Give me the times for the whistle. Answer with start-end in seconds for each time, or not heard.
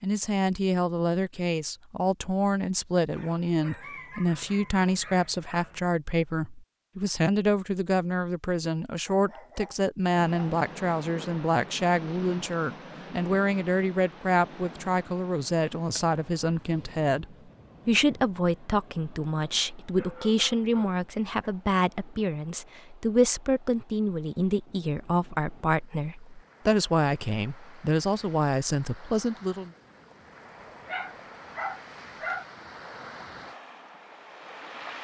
not heard.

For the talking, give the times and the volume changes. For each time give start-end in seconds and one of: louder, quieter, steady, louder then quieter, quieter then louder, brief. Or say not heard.
0.0-29.7 steady.